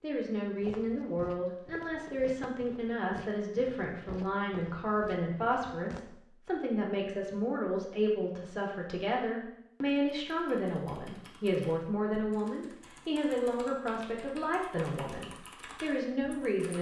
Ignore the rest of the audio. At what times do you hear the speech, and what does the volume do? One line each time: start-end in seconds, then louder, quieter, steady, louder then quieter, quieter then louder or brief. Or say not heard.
0.0-16.7 steady.